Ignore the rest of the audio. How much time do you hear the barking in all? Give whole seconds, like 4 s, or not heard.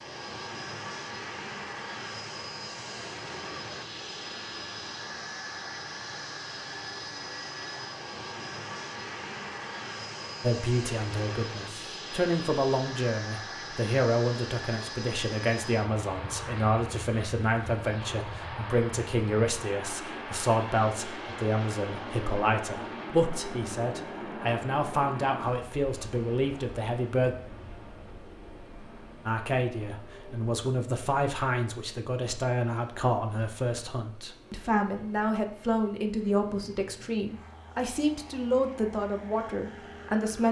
not heard.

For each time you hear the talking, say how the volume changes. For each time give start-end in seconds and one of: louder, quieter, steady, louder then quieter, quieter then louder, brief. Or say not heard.
10.4-27.4 steady
29.2-40.4 steady.